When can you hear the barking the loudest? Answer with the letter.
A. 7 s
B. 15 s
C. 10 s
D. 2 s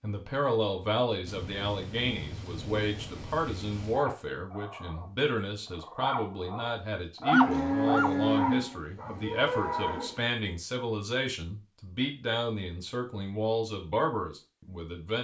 A.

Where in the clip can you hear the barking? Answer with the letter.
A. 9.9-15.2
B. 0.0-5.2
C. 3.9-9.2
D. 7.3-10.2
C.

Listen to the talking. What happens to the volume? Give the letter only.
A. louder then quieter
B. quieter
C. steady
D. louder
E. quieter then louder
C.